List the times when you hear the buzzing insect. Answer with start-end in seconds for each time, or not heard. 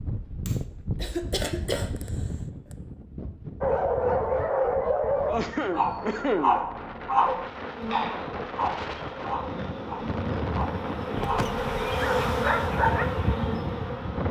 7.3-14.2.